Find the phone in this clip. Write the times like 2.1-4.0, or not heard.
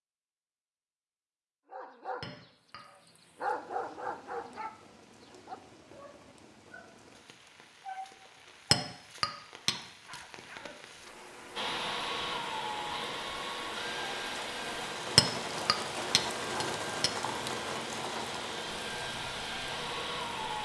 not heard.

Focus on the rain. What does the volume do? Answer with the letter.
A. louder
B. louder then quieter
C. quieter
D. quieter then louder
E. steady
A.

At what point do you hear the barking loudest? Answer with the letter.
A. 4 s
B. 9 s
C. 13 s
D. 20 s
A.